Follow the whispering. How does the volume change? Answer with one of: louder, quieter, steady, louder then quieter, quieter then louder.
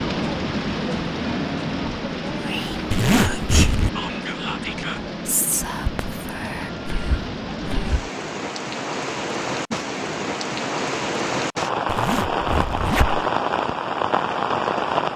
quieter.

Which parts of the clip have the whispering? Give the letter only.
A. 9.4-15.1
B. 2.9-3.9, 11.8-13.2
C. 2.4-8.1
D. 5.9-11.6
C.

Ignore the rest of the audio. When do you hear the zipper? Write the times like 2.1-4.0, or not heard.
2.9-3.9, 11.8-13.2.